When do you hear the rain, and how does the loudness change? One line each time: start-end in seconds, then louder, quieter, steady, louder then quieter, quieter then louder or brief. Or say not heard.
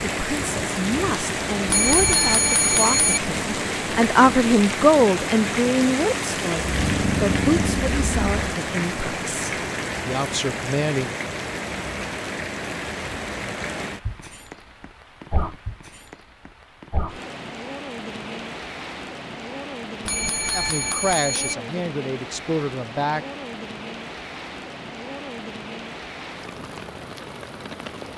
0.0-28.1 quieter.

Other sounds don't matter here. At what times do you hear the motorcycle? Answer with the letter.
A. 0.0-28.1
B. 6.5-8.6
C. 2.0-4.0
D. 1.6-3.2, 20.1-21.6
B.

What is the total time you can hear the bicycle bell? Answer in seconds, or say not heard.
3 s.